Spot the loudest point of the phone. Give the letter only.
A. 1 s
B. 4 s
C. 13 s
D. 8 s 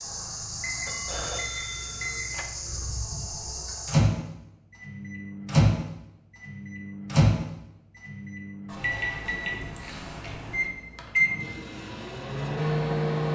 A.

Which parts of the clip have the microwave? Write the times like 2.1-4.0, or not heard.
0.0-13.3.